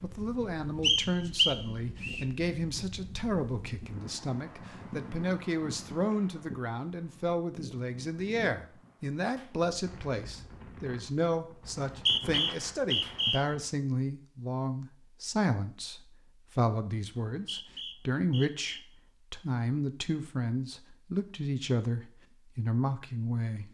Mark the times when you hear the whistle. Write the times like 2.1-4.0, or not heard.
0.8-2.2, 11.7-13.6, 17.2-18.9.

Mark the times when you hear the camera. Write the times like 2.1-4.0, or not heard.
not heard.